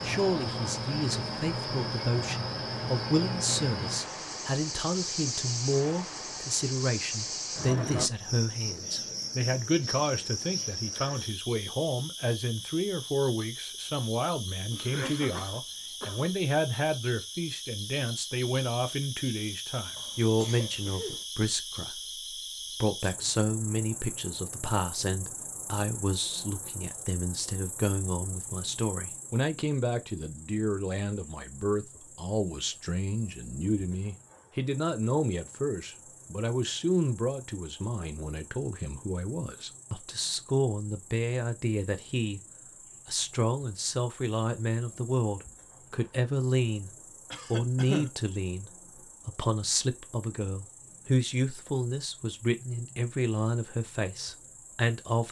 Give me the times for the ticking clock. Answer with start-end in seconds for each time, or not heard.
not heard.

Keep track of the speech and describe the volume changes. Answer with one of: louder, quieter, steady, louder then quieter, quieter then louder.
steady.